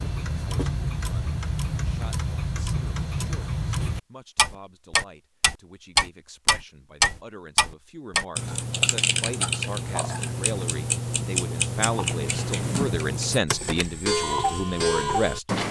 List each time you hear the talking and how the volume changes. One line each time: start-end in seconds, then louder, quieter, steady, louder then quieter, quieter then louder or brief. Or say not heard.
0.0-15.6 louder.